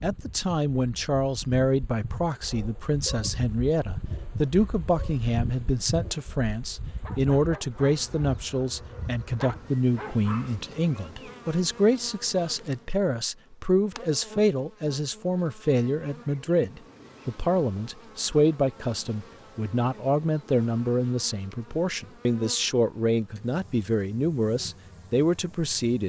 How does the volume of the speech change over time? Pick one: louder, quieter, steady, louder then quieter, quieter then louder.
steady.